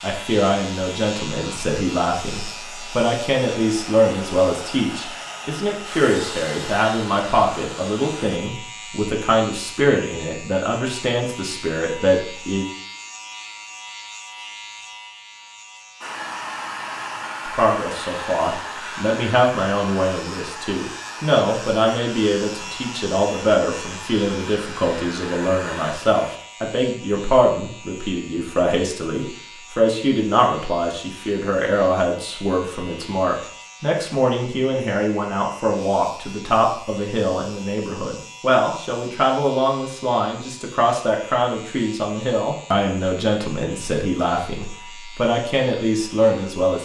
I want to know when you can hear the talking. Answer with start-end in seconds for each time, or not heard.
0.0-12.7, 17.4-46.8.